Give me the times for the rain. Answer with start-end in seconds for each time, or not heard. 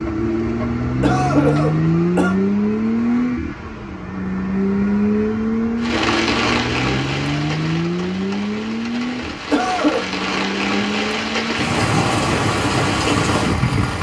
5.8-13.9.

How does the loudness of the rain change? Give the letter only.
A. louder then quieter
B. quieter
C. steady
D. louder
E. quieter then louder
E.